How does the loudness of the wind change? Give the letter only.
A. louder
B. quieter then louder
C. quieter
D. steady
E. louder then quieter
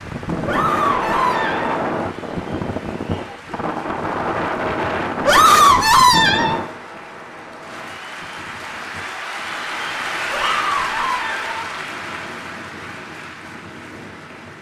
C.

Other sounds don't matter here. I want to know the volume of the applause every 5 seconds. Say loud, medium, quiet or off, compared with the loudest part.
medium, loud, loud.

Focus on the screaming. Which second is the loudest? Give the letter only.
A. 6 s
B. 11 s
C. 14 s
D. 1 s
A.